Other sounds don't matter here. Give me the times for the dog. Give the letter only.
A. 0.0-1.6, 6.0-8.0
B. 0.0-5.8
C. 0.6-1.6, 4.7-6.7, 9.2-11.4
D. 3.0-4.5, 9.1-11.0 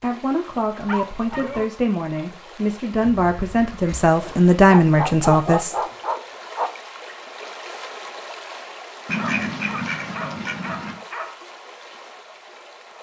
C.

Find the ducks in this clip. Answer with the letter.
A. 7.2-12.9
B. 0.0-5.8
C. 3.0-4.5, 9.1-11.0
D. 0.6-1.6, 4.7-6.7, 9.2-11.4
C.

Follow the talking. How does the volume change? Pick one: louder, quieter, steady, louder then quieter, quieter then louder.
louder.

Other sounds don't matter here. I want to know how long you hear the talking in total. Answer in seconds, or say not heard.
6 s.